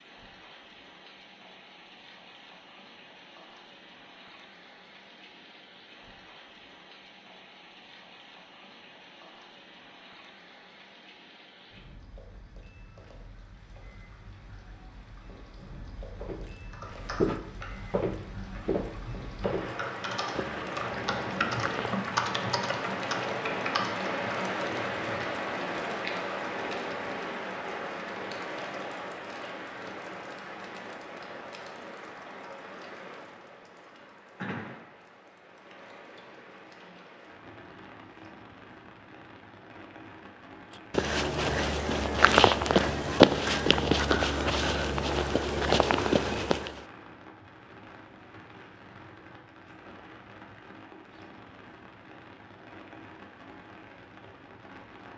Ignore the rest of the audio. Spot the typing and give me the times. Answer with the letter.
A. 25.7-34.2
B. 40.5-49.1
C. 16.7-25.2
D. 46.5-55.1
C.